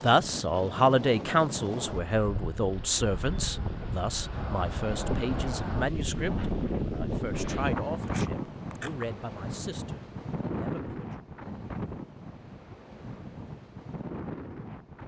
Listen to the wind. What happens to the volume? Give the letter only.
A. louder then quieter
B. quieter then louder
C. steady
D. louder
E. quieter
A.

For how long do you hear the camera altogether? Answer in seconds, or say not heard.
2 s.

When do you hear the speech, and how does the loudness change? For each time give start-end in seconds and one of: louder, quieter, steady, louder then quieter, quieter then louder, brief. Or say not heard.
0.0-11.1 quieter.